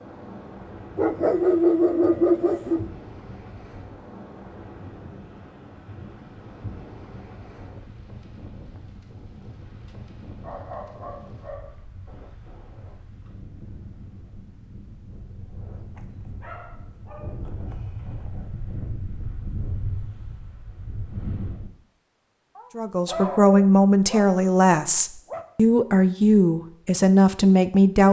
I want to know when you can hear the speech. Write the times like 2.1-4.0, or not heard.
22.8-28.0.